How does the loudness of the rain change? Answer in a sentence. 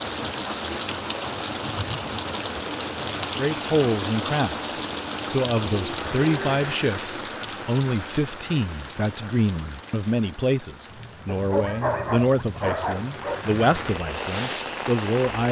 The volume of the rain goes down, then up.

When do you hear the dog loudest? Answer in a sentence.
The loudest moment of the dog is at 12 seconds.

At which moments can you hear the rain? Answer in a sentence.
You can hear the rain from 0.0 to 15.4 s.